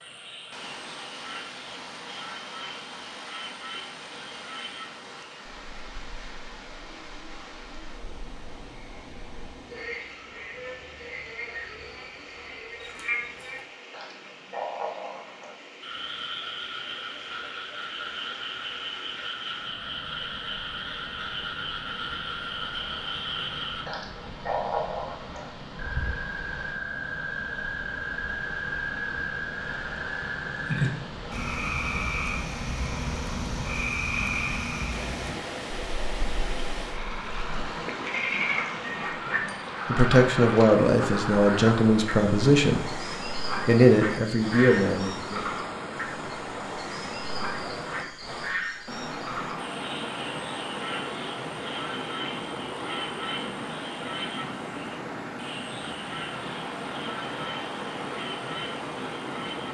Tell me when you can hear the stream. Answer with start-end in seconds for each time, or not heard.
0.0-59.6.